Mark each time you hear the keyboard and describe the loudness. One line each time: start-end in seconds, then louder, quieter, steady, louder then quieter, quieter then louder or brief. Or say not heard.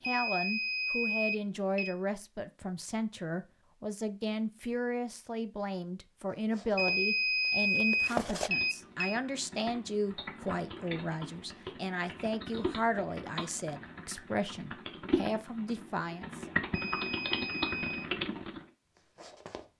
8.3-18.6 louder.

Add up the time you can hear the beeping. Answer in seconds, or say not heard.
6 s.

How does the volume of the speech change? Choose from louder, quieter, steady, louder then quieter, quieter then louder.
steady.